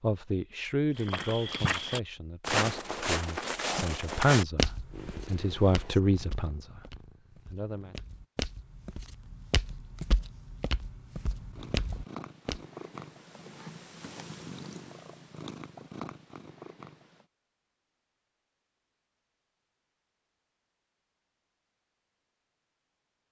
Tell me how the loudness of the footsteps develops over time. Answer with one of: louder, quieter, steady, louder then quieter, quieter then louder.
quieter then louder.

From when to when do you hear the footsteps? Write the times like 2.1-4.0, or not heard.
0.9-12.6.